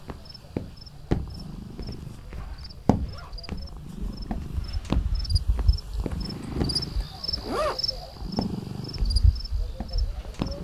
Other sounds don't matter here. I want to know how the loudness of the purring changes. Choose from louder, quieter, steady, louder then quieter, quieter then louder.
louder.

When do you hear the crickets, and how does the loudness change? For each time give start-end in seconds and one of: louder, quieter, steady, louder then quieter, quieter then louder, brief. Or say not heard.
0.0-10.5 louder.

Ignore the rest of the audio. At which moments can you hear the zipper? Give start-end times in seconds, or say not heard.
2.1-3.5, 6.1-7.8.